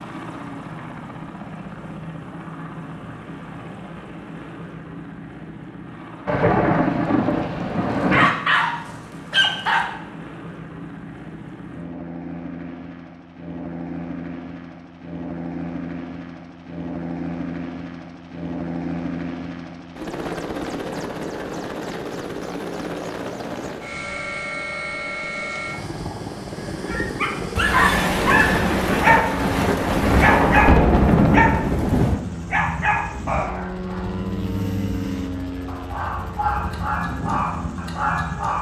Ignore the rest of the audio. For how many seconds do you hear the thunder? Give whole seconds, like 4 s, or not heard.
7 s.